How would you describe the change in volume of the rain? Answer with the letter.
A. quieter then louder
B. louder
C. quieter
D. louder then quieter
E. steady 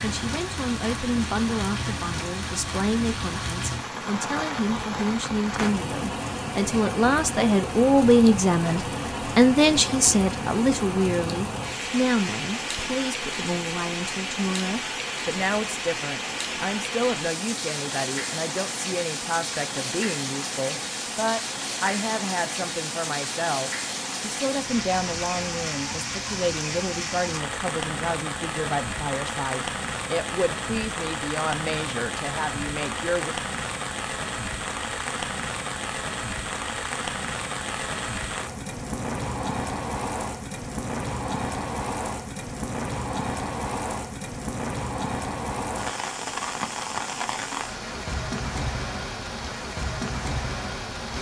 E.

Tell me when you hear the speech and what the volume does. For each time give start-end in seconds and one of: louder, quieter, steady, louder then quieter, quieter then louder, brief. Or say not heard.
0.0-33.4 louder then quieter.